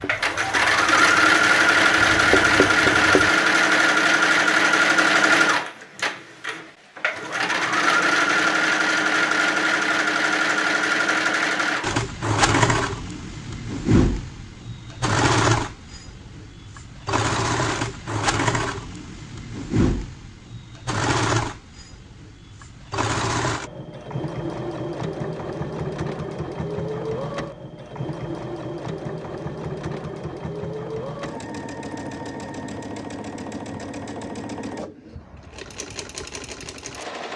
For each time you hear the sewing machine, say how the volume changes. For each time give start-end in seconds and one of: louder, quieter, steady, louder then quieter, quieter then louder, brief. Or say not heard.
0.1-37.3 quieter.